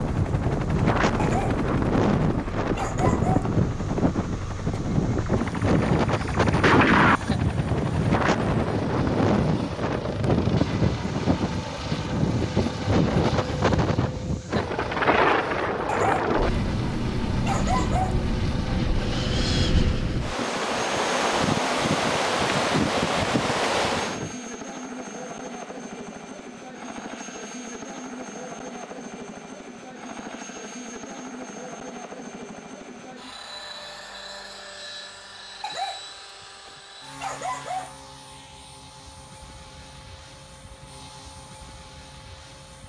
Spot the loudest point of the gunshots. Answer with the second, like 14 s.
7 s.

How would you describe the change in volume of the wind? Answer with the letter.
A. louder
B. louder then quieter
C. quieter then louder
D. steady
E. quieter
D.